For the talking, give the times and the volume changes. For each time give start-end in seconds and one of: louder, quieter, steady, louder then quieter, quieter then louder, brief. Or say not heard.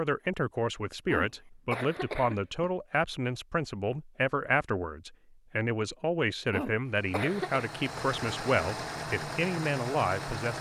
0.0-10.5 steady.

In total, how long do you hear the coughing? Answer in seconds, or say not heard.
3 s.